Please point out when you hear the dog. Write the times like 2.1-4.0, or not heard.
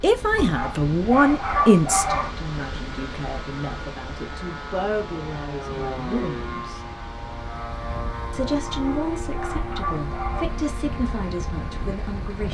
0.3-2.4, 8.7-10.5.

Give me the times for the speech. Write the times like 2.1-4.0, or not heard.
0.0-6.8, 8.3-12.4.